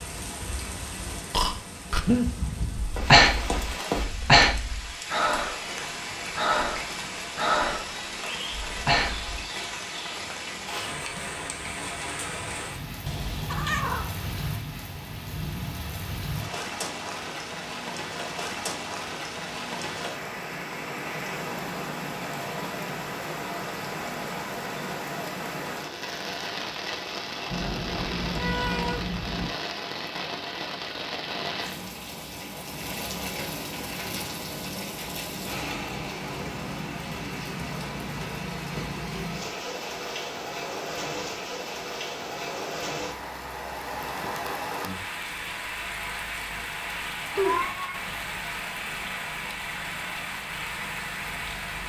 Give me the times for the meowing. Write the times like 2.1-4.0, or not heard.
13.1-14.1, 27.5-29.5, 47.3-48.0.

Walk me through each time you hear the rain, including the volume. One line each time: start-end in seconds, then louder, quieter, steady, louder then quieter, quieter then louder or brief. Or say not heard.
0.0-51.8 steady.